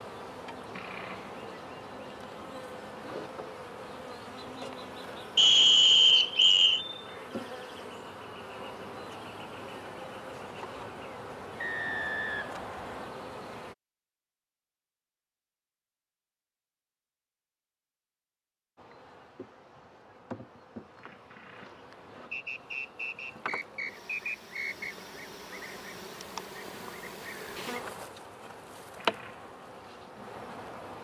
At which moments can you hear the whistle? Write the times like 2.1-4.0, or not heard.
5.3-6.8, 11.6-13.2, 22.3-24.9.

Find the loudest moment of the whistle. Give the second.
6 s.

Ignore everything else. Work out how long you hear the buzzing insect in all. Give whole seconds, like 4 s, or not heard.
26 s.